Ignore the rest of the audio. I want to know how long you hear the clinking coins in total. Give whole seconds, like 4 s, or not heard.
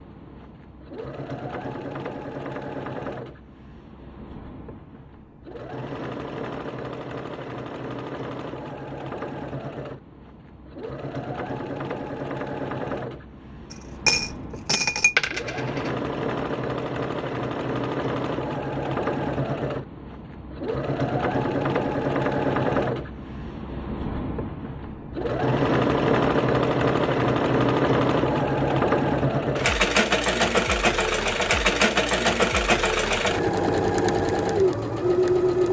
2 s.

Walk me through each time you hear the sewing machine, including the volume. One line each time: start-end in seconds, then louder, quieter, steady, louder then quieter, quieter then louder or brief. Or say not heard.
0.0-35.6 louder.